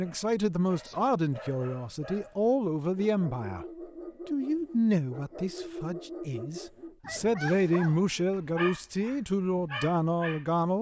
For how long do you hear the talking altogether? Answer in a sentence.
You can hear the talking for 10 seconds altogether.